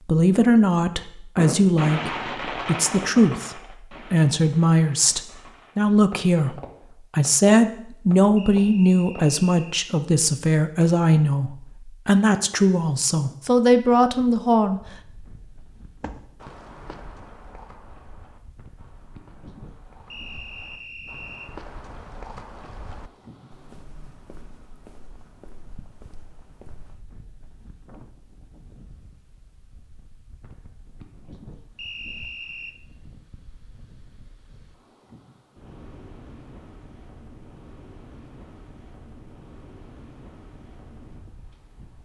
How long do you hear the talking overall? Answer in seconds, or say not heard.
15 s.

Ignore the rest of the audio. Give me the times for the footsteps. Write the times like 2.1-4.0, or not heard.
16.0-27.1.